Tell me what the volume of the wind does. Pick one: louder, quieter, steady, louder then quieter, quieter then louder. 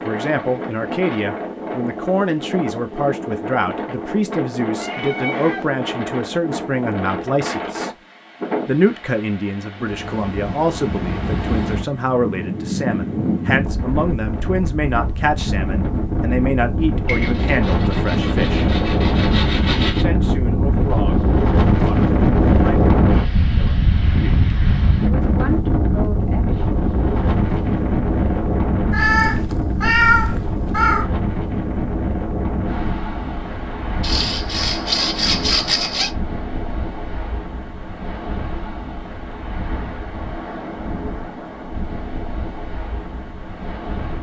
louder then quieter.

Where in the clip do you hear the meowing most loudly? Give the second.
30 s.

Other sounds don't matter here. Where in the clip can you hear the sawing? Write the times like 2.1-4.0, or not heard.
17.1-20.1, 34.0-36.1.